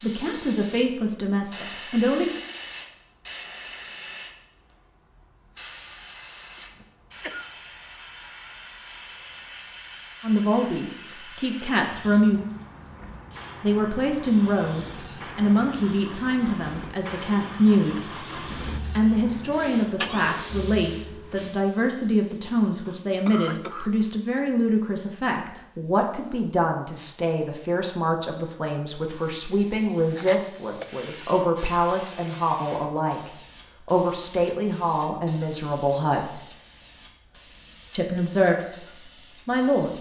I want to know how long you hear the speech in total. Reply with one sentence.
The speech can be heard for 28 seconds in total.